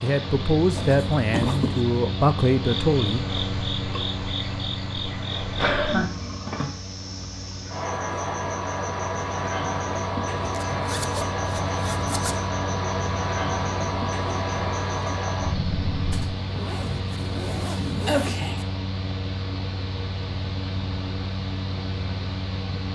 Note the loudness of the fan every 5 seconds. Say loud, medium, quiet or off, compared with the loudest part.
loud, medium, loud, loud, loud.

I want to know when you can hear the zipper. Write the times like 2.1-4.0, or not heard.
0.8-1.9, 10.4-12.3, 16.1-18.6.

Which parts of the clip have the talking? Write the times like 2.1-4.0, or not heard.
0.0-3.2.